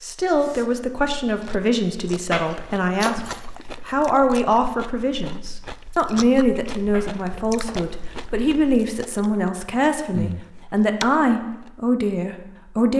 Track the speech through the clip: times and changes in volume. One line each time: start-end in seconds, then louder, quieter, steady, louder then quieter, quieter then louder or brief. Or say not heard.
0.0-12.9 steady.